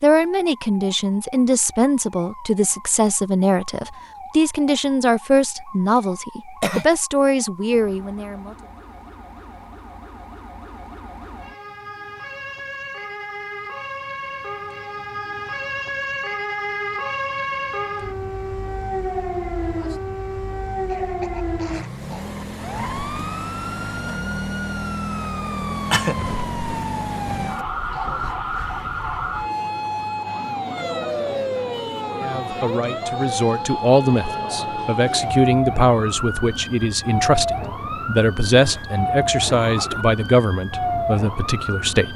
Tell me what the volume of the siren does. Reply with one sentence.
The volume of the siren goes up.